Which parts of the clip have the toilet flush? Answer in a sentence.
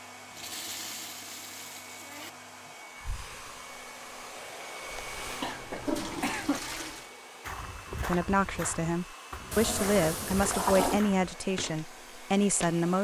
You can hear the toilet flush from 0.3 to 2.3 s, from 4.8 to 7.1 s and from 9.5 to 11.0 s.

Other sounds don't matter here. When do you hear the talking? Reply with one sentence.
The talking can be heard from 8.1 to 12.9 s.